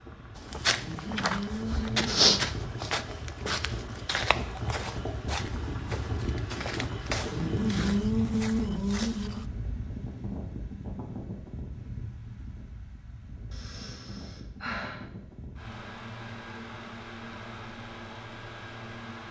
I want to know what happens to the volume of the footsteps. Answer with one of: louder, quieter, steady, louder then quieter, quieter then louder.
quieter.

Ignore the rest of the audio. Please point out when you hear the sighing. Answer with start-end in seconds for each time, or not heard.
0.8-2.4, 7.3-9.4, 13.5-15.0.